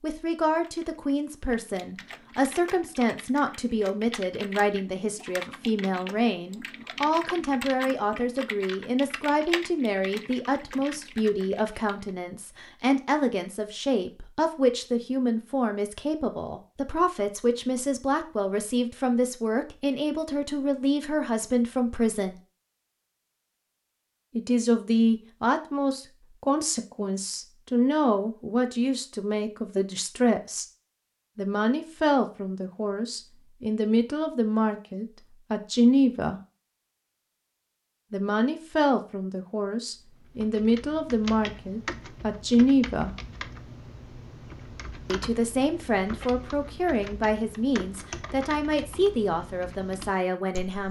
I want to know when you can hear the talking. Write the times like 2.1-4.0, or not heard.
0.0-22.4, 24.4-30.6, 31.4-36.4, 38.1-43.1, 45.0-50.8.